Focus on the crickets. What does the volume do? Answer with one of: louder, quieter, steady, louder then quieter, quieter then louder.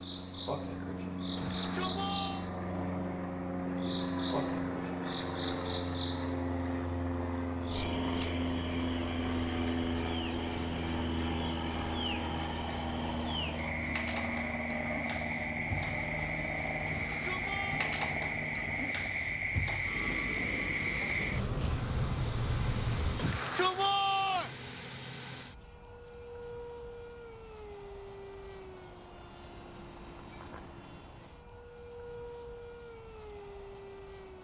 louder.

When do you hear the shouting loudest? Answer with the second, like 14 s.
24 s.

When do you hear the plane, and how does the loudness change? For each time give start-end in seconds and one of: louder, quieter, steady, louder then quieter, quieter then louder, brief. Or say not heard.
0.0-34.3 quieter.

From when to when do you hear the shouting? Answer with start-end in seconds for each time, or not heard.
1.4-2.5, 16.9-17.9, 23.1-24.6.